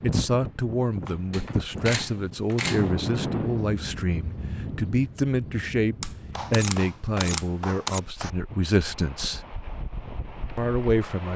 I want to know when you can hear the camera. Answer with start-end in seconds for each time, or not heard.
1.3-2.9, 6.0-8.0.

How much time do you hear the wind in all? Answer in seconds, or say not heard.
11 s.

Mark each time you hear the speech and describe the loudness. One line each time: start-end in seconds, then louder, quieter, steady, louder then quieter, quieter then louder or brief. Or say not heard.
0.0-9.4 steady
10.6-11.3 brief.